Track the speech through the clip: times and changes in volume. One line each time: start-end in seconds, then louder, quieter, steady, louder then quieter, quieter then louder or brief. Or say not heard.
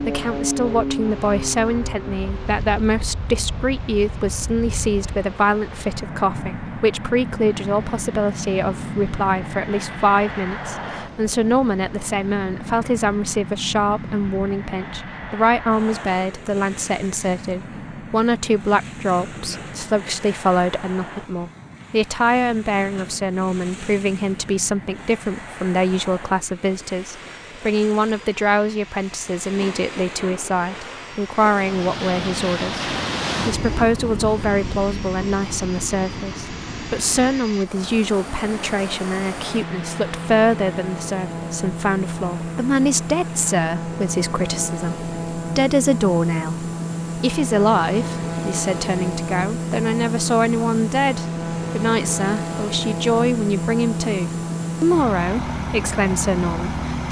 0.0-57.0 steady.